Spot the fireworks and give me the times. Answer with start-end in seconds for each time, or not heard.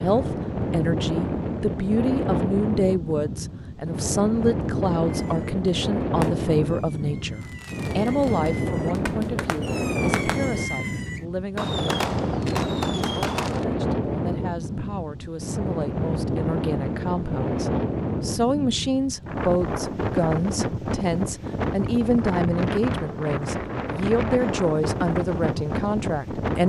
5.0-13.7.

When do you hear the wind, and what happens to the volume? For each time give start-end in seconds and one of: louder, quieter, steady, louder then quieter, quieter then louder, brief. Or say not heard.
0.0-26.6 steady.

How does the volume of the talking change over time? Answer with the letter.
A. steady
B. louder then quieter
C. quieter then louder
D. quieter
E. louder
C.